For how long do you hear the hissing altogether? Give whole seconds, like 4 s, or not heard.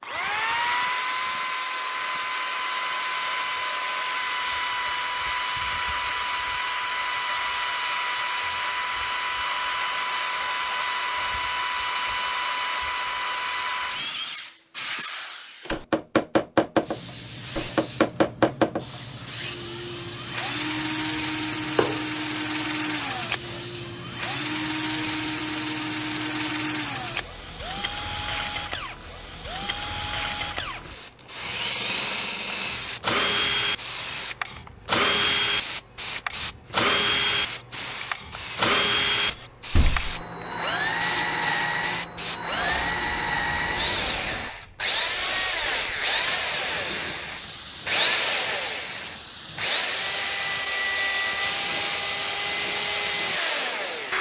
37 s.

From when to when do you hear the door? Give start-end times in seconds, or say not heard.
39.2-40.1.